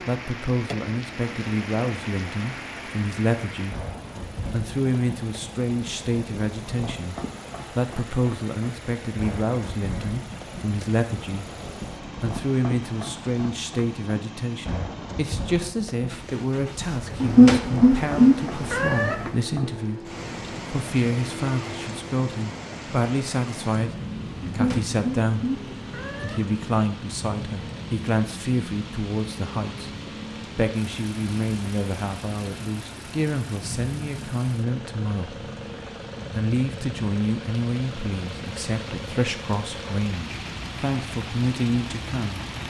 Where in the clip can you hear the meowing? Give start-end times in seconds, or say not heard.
17.2-19.1, 24.4-26.4.